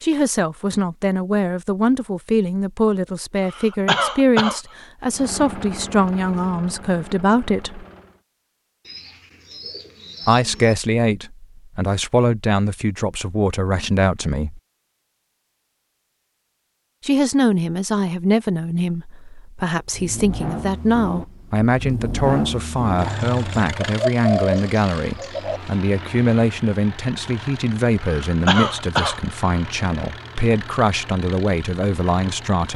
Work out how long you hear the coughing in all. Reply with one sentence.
The coughing can be heard for 3 seconds in total.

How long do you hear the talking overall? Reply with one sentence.
The talking can be heard for 28 seconds in total.